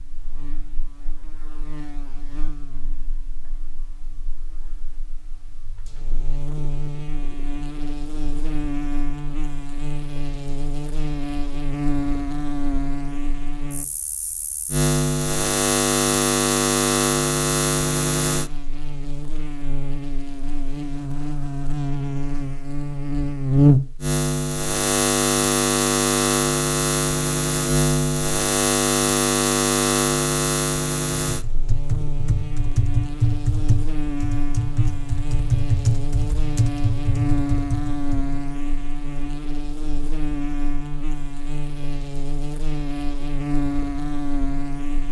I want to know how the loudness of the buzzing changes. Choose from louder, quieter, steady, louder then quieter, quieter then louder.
louder then quieter.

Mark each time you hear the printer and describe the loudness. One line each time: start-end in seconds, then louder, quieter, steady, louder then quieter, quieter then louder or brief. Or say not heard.
not heard.